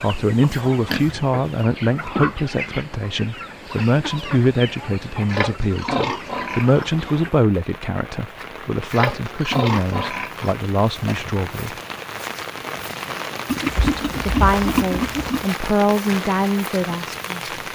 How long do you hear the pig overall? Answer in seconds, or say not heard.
8 s.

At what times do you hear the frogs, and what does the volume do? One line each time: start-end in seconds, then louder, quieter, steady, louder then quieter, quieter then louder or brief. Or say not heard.
not heard.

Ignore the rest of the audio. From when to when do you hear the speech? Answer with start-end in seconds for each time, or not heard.
0.0-11.8, 13.8-17.4.